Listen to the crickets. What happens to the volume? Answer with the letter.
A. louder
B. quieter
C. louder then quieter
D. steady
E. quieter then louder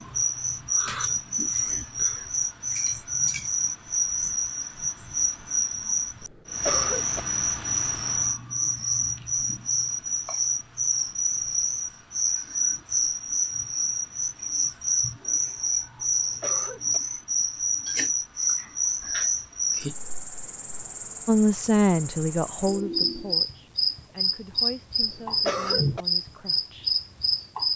D.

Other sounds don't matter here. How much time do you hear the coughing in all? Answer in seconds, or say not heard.
3 s.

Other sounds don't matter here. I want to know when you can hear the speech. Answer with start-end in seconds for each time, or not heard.
21.2-26.9.